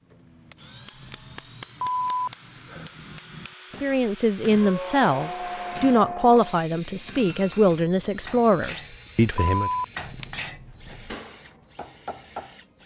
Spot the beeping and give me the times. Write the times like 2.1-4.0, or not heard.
1.8-2.9, 9.3-9.8.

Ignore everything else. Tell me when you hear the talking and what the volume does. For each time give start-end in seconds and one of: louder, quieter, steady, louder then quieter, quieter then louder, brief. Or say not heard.
3.8-9.7 steady.